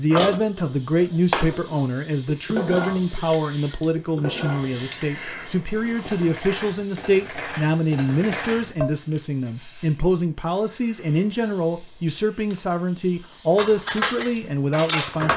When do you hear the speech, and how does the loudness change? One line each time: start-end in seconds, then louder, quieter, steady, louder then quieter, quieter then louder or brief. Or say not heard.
0.0-15.3 steady.